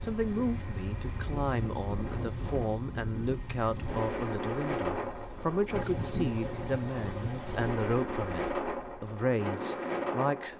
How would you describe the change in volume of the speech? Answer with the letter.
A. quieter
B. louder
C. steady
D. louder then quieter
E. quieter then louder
C.